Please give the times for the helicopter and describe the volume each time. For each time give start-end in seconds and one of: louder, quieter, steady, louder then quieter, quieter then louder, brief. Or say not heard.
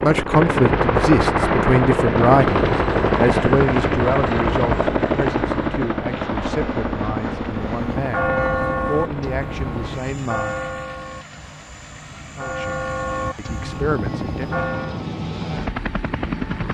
0.0-16.7 quieter then louder.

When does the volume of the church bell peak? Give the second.
8 s.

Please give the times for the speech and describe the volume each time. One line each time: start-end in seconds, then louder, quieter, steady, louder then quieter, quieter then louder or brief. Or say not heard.
0.0-10.6 quieter
12.3-14.6 brief.